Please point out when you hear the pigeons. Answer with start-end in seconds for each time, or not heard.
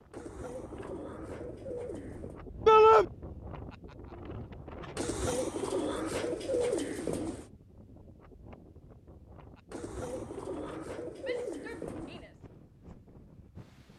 0.1-2.5, 5.0-7.5, 9.7-12.3.